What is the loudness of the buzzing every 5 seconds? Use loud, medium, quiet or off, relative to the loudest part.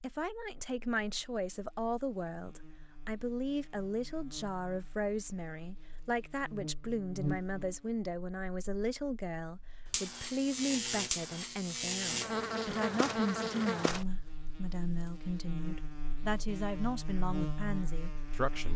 quiet, medium, loud, medium.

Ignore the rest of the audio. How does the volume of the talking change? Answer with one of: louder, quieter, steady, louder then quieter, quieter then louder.
steady.